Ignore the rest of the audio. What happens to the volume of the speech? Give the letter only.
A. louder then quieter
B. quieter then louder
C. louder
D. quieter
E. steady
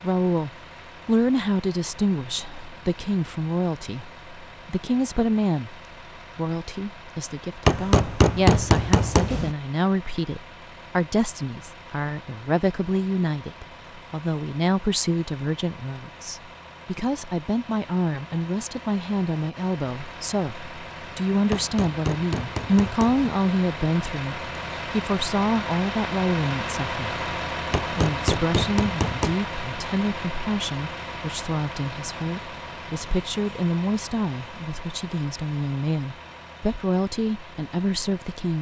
E.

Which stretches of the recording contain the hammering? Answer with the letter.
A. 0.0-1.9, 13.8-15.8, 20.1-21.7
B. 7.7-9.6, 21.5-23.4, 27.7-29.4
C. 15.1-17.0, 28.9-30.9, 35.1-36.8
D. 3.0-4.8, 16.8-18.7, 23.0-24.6
B.